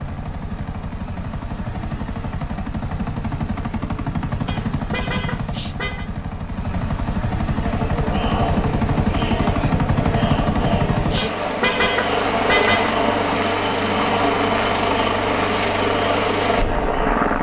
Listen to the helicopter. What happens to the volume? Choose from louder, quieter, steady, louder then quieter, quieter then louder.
louder.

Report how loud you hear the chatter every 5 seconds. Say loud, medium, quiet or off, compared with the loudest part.
off, loud, loud, loud.